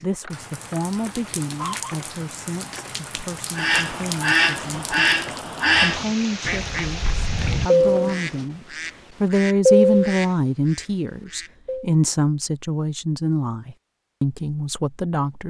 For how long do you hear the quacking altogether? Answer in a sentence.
The quacking can be heard for 8 seconds in total.